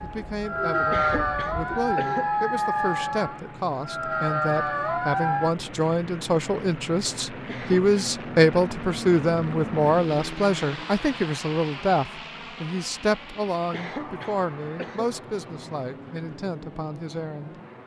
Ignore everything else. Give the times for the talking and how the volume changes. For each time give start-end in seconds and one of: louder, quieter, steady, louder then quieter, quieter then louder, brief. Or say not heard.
0.0-17.6 louder then quieter.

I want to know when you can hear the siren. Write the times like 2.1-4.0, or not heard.
0.0-5.5.